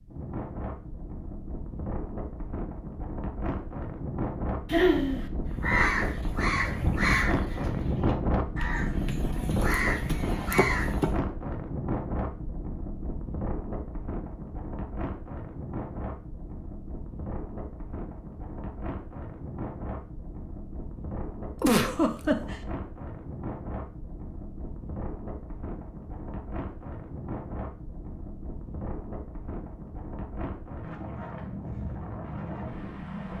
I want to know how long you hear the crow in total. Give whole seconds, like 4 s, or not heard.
6 s.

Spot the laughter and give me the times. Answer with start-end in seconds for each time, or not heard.
4.7-5.2, 21.6-22.6.